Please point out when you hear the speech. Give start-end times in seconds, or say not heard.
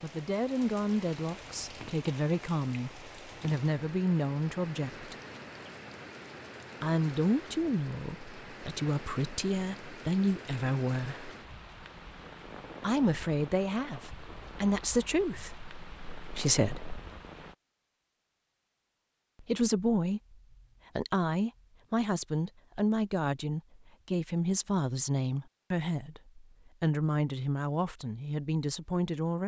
0.0-5.2, 6.8-11.3, 12.8-17.0, 19.4-20.4, 20.9-29.4.